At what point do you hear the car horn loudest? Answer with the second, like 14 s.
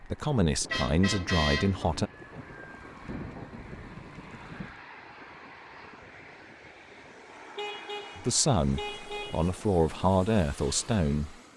1 s.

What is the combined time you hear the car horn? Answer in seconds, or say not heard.
3 s.